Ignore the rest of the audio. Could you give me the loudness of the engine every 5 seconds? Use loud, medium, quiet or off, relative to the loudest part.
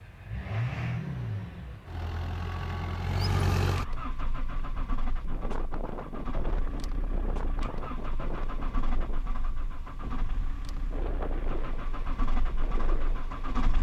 loud, medium, medium.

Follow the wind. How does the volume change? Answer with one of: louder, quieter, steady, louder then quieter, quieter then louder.
steady.